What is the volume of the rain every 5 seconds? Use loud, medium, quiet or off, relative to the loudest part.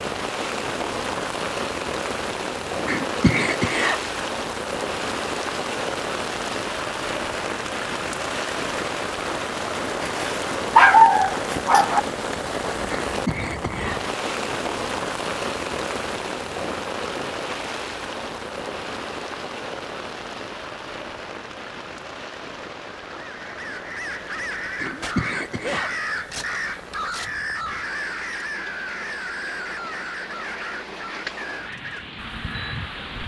loud, loud, loud, loud, medium, quiet, medium.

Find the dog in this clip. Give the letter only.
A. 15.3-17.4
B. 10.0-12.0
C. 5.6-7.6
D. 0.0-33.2
B.